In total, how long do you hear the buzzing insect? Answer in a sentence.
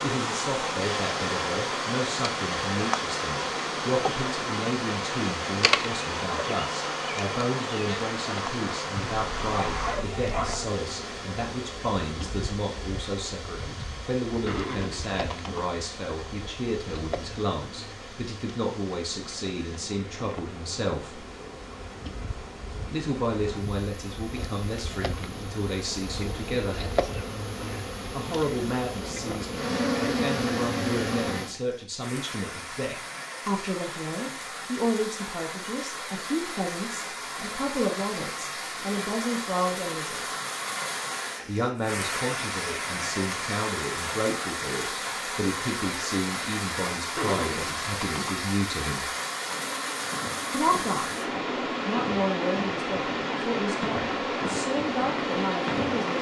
The buzzing insect can be heard for 38 seconds in total.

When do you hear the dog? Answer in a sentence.
The dog can be heard from 8.9 to 10.7 s.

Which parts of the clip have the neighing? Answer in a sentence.
You can hear the neighing from 14.4 to 15.7 s and from 47.1 to 48.4 s.